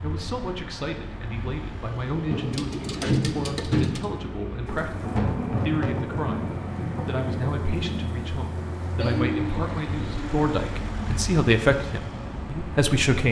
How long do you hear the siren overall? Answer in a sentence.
You can't hear the siren here.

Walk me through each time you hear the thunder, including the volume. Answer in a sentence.
You can hear the thunder from 4.7 to 9.3 s, getting quieter.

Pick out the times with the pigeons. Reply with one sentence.
The pigeons can be heard from 2.3 to 4.0 s and from 9.0 to 10.8 s.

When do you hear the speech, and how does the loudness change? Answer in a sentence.
You can hear the speech from 0.0 to 13.2 s, getting louder.